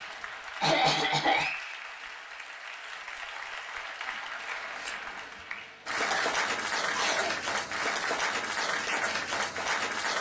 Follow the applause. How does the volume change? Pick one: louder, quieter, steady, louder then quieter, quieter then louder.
louder.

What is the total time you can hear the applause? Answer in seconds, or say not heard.
10 s.